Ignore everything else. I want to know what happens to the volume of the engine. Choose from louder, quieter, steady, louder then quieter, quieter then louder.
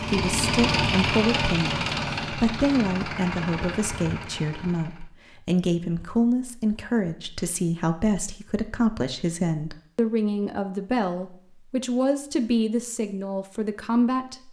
quieter.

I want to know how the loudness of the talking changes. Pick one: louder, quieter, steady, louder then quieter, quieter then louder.
steady.